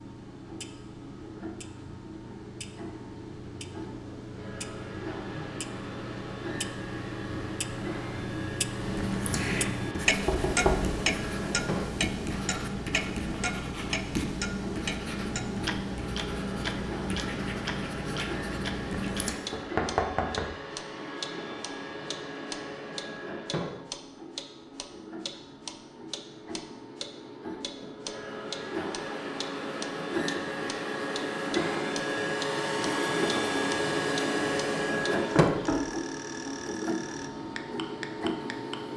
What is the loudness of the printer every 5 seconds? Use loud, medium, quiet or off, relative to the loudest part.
quiet, medium, medium, medium, medium, medium, loud, loud.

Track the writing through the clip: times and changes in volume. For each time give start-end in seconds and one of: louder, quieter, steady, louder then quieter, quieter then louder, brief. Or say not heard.
8.8-19.4 steady.